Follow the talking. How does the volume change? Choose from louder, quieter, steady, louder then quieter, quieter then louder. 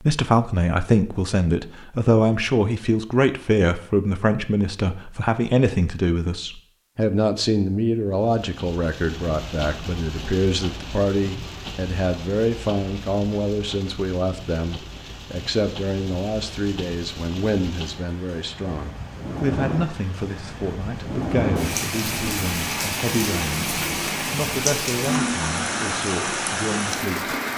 quieter.